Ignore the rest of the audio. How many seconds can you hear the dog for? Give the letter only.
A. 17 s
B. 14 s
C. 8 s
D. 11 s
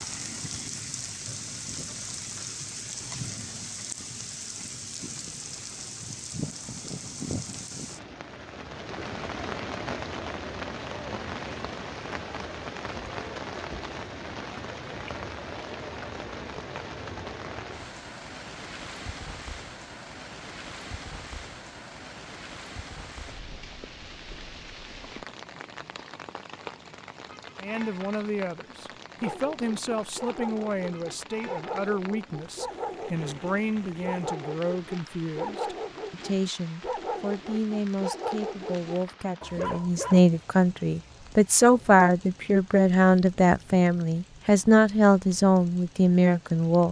D.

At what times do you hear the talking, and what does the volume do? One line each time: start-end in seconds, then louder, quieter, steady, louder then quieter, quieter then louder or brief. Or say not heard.
27.6-46.8 louder.